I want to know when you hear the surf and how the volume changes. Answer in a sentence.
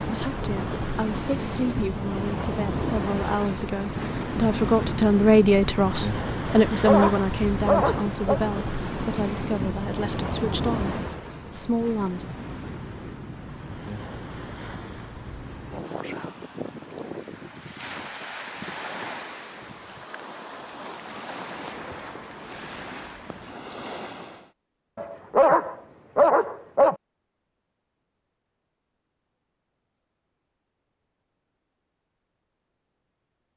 You can hear the surf from 0.0 to 24.5 s, getting quieter.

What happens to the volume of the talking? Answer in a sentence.
The loudness of the talking goes up, then down.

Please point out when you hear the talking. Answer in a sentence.
You can hear the talking from 0.0 to 12.3 s.